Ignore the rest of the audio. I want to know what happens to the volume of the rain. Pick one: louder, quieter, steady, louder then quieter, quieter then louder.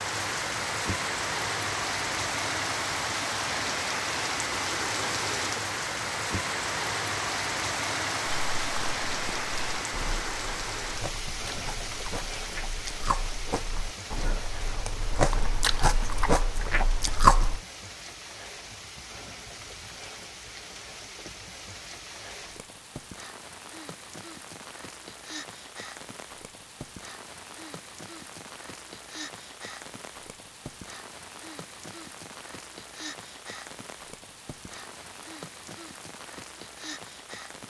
quieter.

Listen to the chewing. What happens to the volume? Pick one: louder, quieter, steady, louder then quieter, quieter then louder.
louder.